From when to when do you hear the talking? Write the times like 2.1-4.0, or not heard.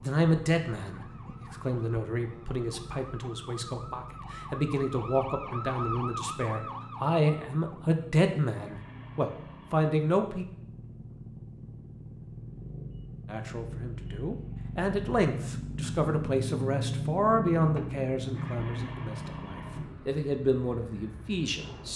0.0-10.4, 13.2-21.9.